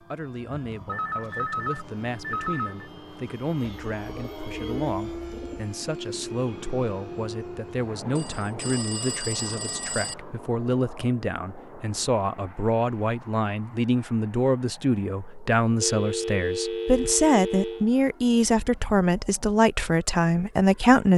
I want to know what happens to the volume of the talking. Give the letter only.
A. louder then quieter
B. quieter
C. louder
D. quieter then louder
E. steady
C.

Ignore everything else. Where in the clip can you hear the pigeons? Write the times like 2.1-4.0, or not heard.
3.6-5.7.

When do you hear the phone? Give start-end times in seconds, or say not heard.
0.8-2.9, 8.2-10.2, 15.8-17.9.